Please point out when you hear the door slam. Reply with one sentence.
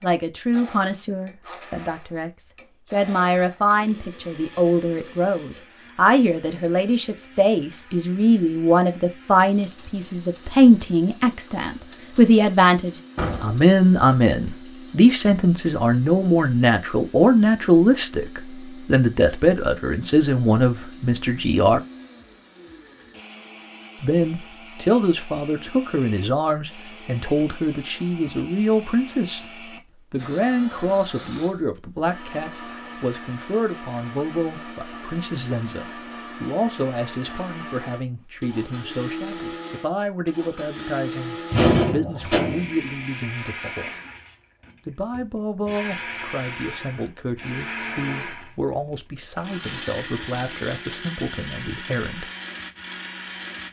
The door slam can be heard from 13.2 to 13.6 s and from 41.5 to 42.8 s.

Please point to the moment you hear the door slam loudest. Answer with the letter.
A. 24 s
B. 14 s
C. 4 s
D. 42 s
D.